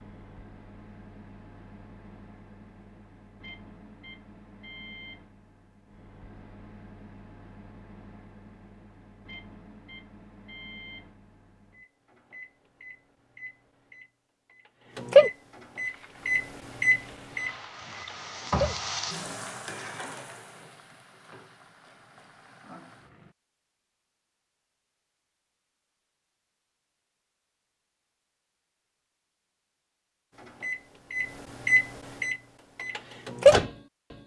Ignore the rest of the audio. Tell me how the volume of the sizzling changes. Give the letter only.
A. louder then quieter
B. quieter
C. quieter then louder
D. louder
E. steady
A.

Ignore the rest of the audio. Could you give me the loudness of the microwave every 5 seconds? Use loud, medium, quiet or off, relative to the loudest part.
quiet, quiet, quiet, loud, off, off, loud.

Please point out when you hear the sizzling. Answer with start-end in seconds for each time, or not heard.
15.8-23.4.